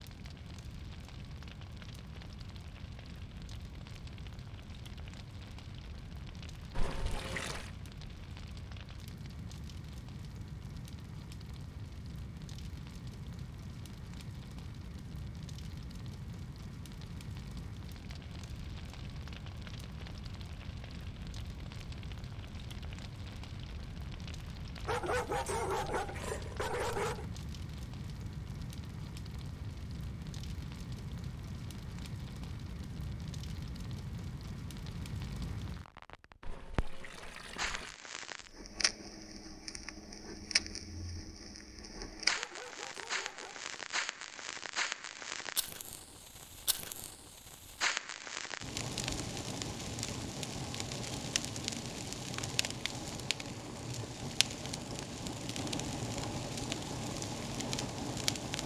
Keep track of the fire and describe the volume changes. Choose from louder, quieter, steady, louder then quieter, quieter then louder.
louder.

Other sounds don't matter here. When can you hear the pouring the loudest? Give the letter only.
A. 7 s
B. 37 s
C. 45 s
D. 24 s
A.